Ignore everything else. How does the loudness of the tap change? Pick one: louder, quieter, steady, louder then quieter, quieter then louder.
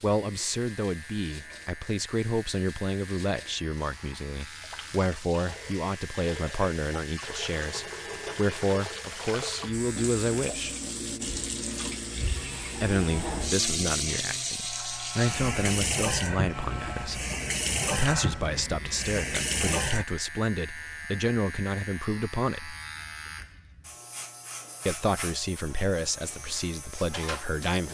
louder.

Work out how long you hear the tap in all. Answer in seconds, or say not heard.
20 s.